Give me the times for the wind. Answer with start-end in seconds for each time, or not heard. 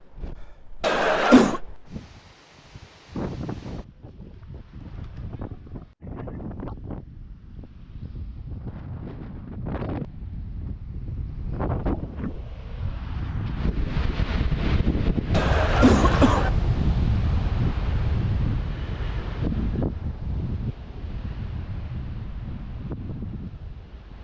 0.0-24.1.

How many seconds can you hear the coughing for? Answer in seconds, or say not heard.
2 s.